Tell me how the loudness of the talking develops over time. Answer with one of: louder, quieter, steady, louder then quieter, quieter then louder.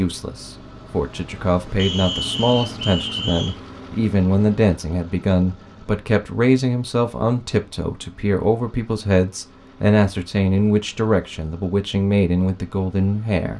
steady.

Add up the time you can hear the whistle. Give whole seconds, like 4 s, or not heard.
2 s.